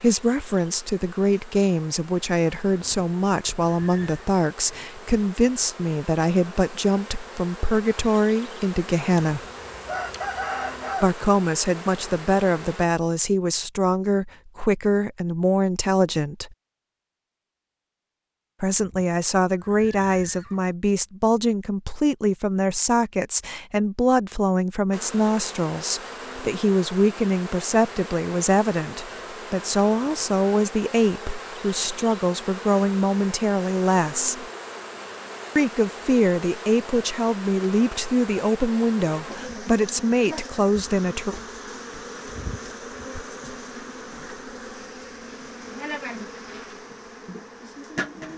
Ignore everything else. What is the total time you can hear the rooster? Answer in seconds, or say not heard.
2 s.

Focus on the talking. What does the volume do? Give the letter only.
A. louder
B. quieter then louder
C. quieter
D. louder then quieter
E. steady
E.